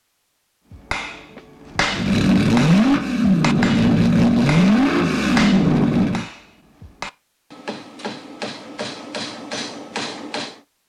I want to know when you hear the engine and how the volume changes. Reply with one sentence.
You can hear the engine from 1.9 to 6.2 s, at a steady volume.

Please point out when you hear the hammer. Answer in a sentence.
The hammer can be heard from 0.7 to 10.6 s.